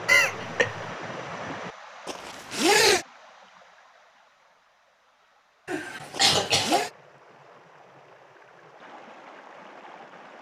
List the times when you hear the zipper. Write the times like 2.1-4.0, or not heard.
2.0-3.0, 6.1-6.9.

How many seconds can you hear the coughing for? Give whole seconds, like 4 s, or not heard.
2 s.